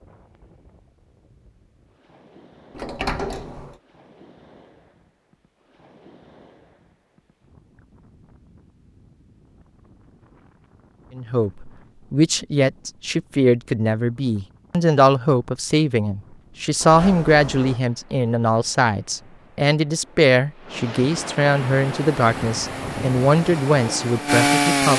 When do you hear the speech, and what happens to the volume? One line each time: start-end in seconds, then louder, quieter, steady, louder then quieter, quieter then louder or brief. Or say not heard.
11.2-24.9 steady.